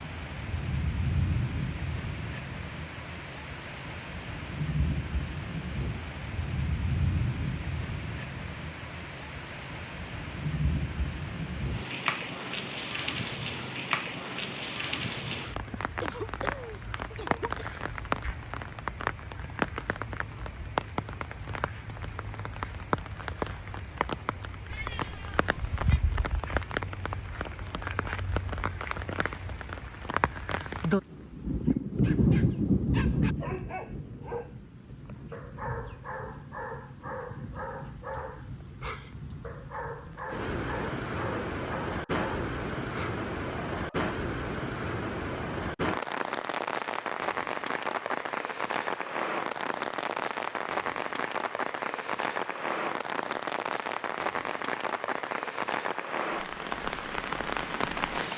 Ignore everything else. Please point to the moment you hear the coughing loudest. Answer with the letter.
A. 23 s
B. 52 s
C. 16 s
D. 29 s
C.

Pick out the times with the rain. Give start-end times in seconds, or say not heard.
0.0-58.3.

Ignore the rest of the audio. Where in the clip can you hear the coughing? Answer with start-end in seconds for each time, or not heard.
15.2-17.6.